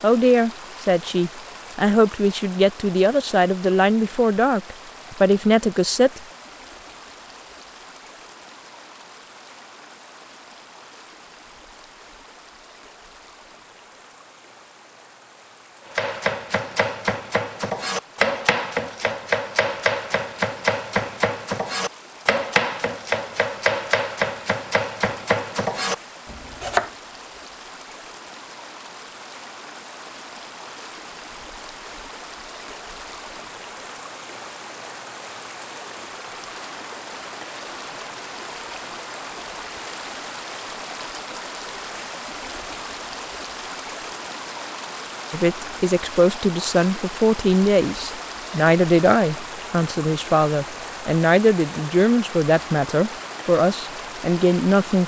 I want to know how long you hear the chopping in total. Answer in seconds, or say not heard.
11 s.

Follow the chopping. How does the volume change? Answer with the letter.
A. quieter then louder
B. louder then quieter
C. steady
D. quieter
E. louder
C.